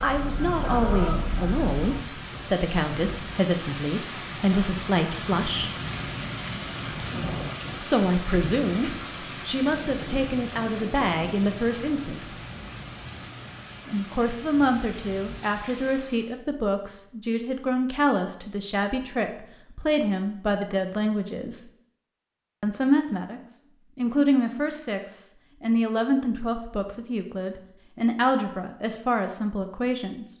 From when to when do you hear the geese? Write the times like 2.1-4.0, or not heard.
0.0-2.0.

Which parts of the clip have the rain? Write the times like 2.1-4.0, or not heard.
0.0-16.4.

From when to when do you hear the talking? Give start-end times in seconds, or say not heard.
0.0-5.7, 7.8-12.3, 13.8-21.6, 22.6-30.3.